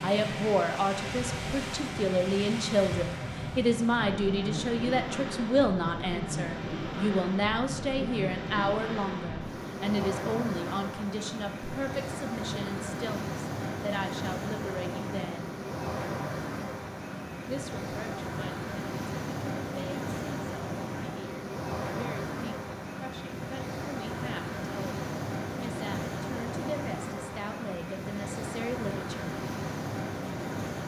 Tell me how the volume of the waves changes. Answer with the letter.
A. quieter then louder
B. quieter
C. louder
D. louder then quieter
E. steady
E.